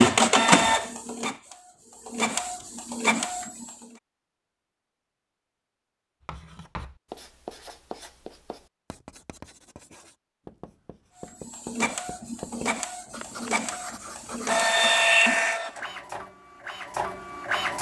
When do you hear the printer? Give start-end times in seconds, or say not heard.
0.0-3.7, 11.4-17.7.